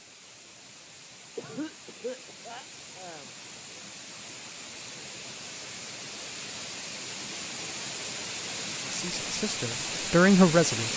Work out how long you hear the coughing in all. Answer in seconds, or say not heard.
2 s.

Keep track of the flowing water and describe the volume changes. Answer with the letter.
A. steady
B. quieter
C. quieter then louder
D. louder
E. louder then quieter
D.